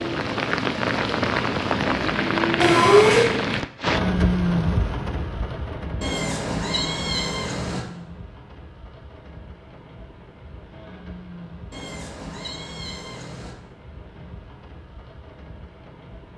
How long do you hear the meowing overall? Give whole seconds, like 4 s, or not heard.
4 s.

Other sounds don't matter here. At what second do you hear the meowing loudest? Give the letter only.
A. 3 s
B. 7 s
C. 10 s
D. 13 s
A.